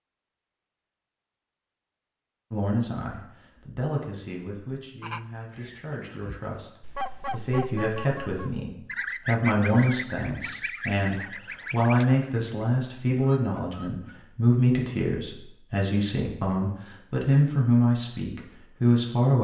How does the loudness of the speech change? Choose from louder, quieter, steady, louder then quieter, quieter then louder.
louder.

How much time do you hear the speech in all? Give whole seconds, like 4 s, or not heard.
17 s.